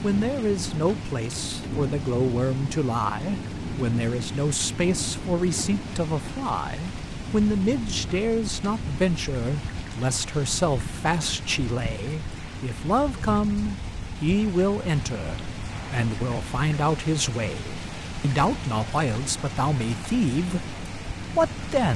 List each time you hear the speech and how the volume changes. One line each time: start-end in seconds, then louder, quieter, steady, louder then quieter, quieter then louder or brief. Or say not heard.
0.0-21.9 steady.